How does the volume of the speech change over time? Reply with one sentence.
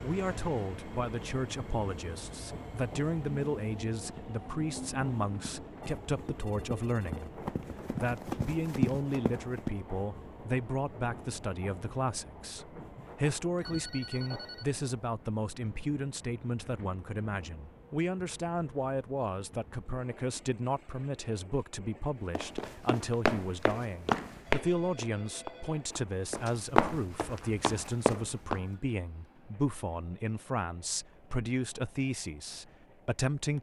The volume of the speech stays about the same.